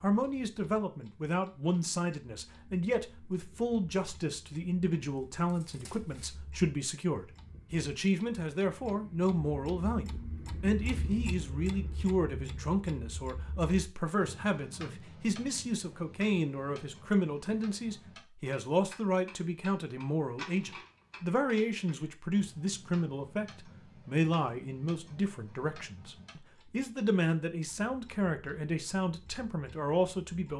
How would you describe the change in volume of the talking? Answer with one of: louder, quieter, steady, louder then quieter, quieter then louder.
steady.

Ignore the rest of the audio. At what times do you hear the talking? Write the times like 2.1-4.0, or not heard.
0.0-30.5.